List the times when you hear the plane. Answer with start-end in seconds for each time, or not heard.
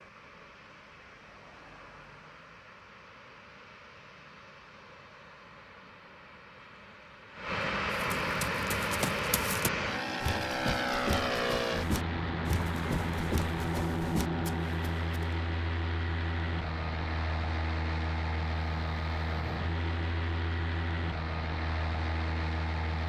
0.0-23.0.